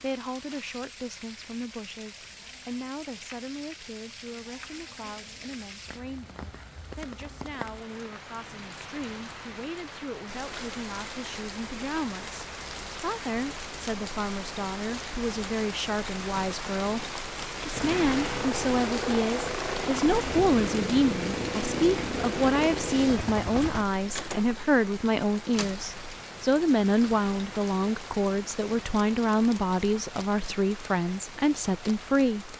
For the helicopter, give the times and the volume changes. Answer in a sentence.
You can hear the helicopter from 17.7 to 23.9 s, at a steady volume.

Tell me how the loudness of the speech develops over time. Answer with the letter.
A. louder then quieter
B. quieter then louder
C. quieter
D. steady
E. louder
E.